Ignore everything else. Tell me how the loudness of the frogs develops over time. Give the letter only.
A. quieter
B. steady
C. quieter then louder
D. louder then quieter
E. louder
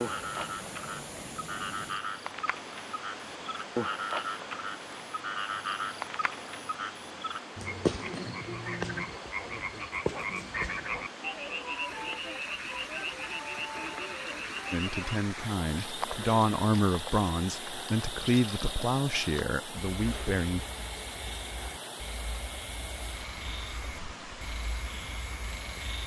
A.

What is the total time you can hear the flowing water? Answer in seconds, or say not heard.
26 s.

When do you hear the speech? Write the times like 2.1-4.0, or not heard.
14.7-20.6.